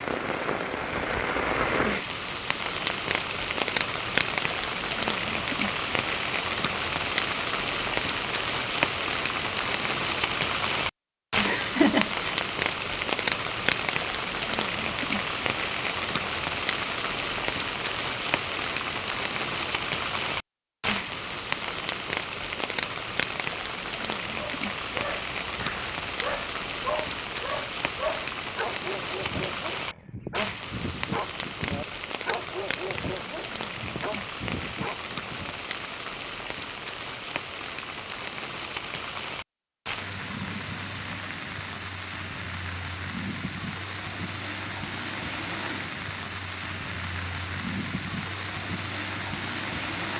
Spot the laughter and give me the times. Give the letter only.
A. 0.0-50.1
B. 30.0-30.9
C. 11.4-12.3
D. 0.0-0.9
C.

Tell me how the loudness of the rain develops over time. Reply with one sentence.
The volume of the rain goes down.